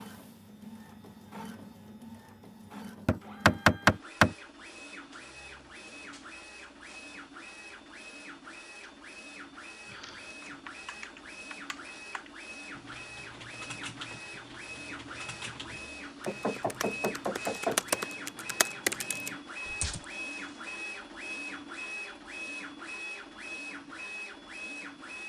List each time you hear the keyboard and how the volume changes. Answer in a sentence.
The keyboard can be heard from 9.8 to 20.0 s, getting louder.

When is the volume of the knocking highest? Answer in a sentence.
The volume of the knocking peaks at 4 seconds.